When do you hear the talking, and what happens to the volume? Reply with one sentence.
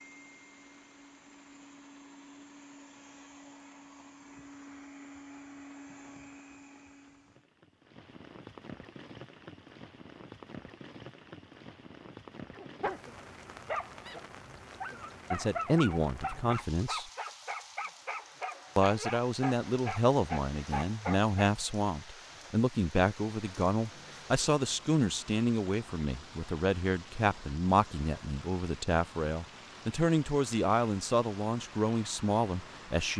The talking can be heard briefly from 15.3 to 17.1 s; and from 18.8 to 33.1 s, at a steady volume.